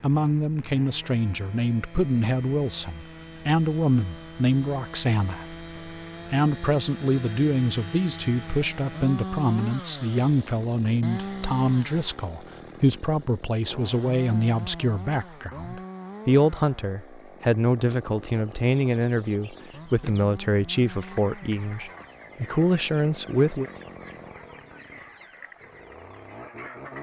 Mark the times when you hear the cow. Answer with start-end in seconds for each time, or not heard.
not heard.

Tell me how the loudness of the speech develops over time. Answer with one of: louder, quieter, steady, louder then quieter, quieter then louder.
steady.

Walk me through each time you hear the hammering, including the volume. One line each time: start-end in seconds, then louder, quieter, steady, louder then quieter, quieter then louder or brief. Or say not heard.
not heard.